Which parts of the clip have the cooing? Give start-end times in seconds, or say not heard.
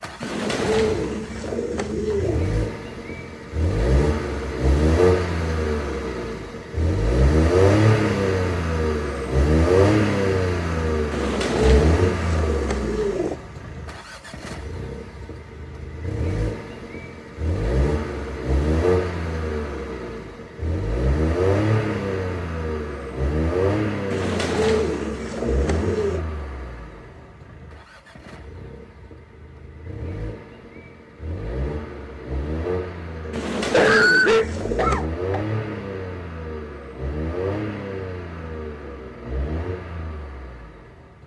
0.2-2.5, 11.1-13.4, 24.1-26.2, 33.3-35.0.